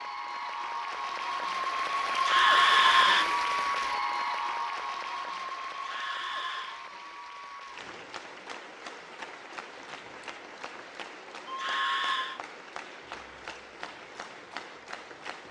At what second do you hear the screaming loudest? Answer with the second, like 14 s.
3 s.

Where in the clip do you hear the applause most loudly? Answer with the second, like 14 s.
3 s.